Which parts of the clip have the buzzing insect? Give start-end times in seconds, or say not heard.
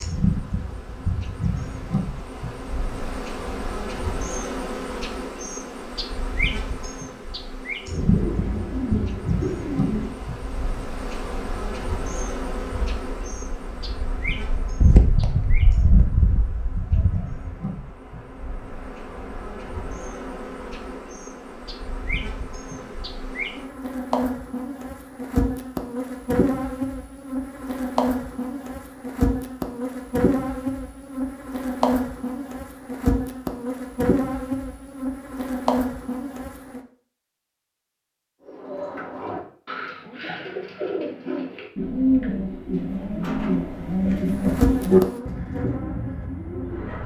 0.0-36.8, 44.3-47.0.